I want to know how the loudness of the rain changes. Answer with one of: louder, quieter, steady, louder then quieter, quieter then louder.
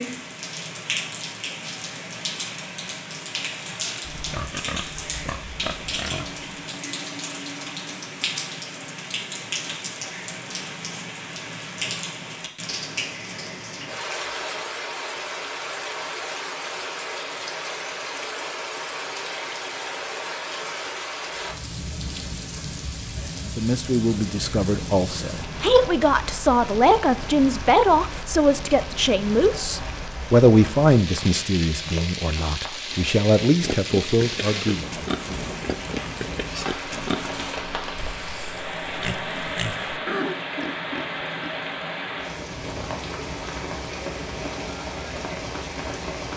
steady.